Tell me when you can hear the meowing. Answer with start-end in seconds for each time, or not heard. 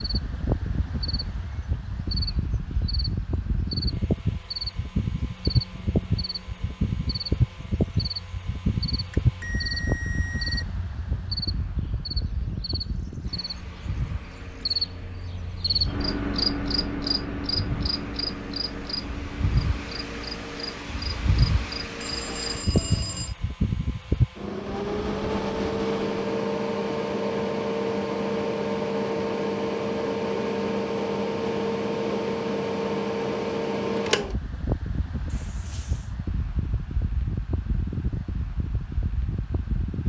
not heard.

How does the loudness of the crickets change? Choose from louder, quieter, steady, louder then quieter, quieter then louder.
louder then quieter.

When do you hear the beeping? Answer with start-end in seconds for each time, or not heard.
9.2-10.7, 22.0-23.4, 35.2-36.1.